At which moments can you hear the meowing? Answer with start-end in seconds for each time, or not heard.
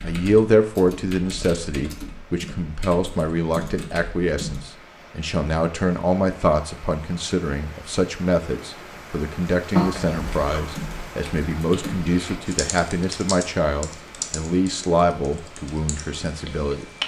9.8-10.6.